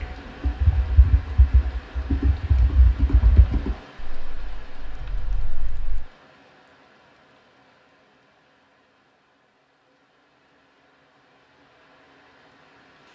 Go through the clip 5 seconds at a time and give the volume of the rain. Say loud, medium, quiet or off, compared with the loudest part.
loud, medium, quiet.